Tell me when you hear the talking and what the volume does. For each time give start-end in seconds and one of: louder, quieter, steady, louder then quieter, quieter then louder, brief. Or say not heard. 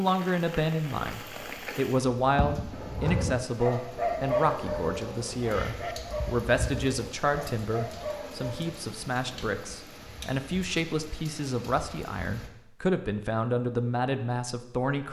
0.0-15.0 steady.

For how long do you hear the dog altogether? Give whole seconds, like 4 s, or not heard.
6 s.